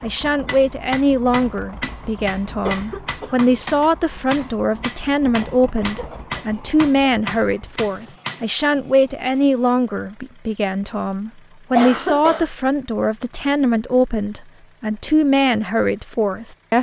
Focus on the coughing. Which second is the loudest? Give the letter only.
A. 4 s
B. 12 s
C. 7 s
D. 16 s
B.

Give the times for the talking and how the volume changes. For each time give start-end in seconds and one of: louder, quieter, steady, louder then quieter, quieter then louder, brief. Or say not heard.
0.0-16.7 steady.